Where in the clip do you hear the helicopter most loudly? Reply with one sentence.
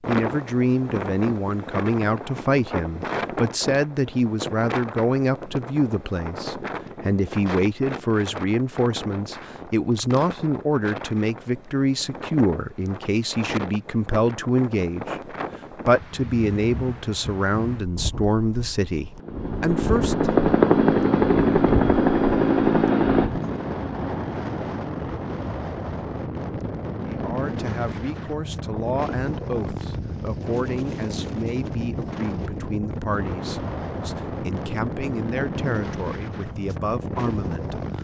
The volume of the helicopter peaks at 21 seconds.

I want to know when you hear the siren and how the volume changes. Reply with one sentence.
The siren can't be heard in this clip.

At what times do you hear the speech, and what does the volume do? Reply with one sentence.
You can hear the speech from 0.1 to 20.4 s, at a steady volume; and from 27.1 to 37.9 s, at a steady volume.